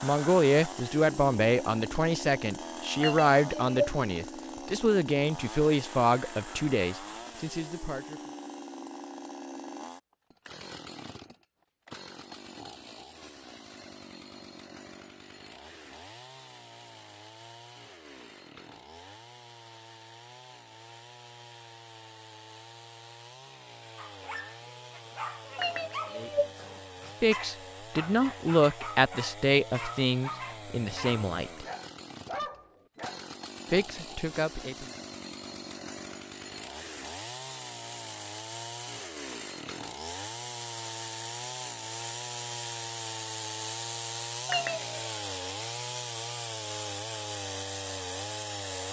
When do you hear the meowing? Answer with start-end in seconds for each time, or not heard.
3.0-3.9, 25.6-26.5, 44.5-45.0.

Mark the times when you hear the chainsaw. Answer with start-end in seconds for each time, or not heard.
0.0-48.8.